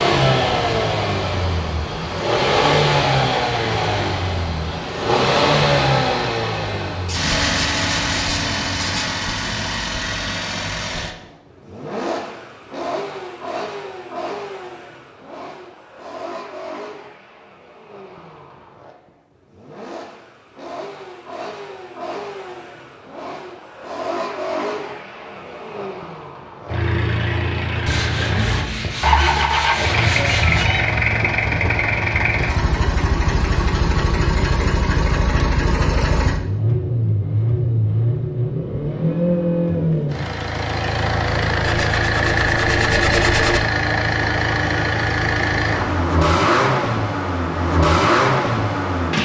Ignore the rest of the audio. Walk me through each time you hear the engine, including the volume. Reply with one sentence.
The engine can be heard from 0.0 to 49.1 s, getting quieter then louder.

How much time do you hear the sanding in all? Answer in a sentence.
You can hear the sanding for 7 seconds altogether.